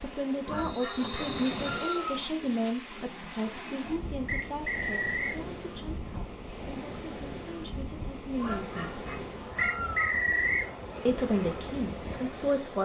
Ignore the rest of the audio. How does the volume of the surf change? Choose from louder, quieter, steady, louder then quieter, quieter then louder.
steady.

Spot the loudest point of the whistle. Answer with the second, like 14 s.
10 s.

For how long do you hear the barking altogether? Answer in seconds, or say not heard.
4 s.